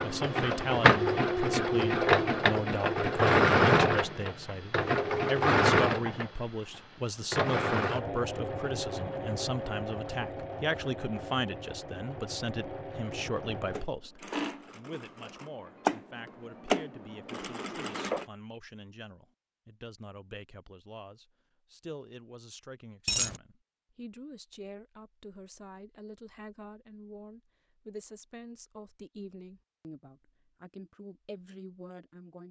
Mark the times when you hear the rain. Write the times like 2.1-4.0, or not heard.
not heard.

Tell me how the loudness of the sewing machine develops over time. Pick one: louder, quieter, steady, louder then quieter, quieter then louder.
quieter then louder.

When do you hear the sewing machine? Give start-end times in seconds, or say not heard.
0.0-18.2.